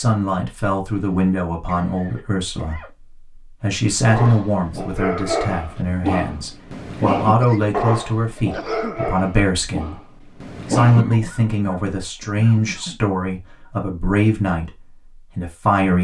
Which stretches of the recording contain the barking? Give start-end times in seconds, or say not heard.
4.0-11.1.